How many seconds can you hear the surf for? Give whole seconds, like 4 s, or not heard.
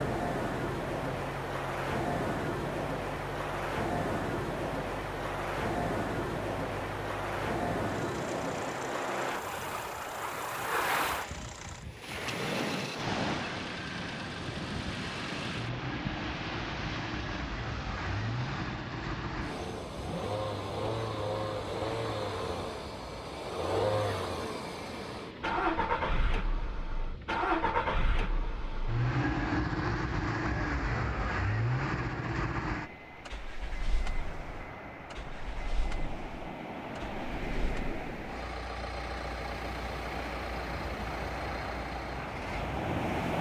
43 s.